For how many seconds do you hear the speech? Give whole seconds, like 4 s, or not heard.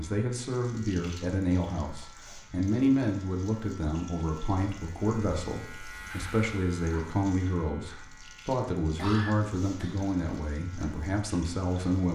12 s.